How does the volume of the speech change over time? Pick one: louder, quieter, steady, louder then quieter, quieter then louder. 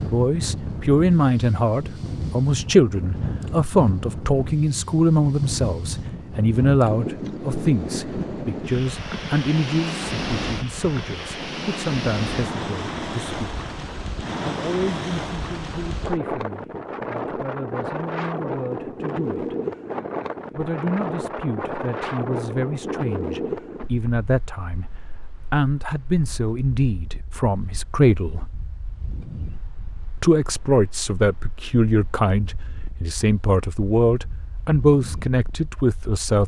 quieter then louder.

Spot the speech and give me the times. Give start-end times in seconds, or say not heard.
0.1-13.5, 14.4-19.6, 20.6-28.5, 30.2-36.4.